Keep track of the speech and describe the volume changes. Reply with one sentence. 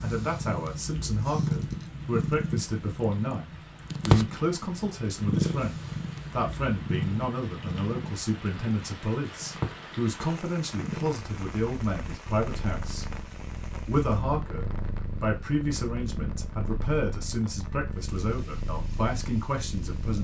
The loudness of the speech stays about the same.